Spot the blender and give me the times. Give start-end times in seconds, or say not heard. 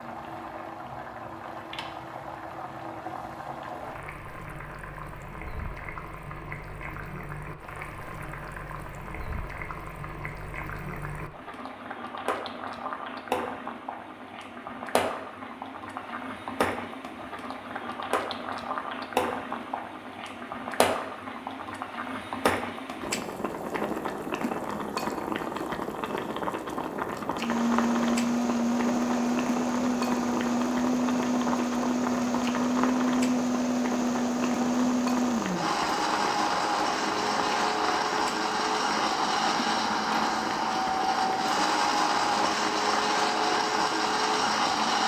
27.3-45.0.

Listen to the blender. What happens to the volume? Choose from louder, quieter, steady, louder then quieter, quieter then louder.
steady.